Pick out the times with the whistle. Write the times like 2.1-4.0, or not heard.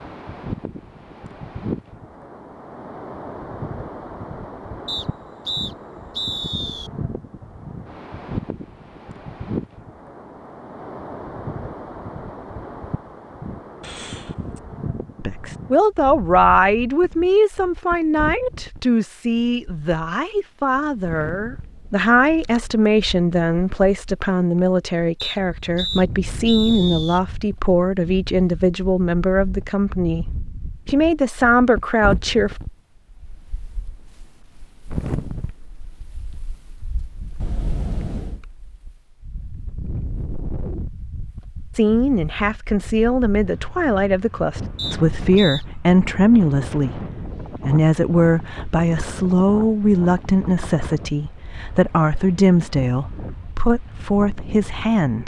4.8-6.9, 25.1-27.2, 44.8-45.6.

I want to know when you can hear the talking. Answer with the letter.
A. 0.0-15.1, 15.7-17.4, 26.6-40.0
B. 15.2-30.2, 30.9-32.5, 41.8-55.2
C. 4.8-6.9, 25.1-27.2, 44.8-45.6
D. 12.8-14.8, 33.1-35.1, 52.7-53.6
B.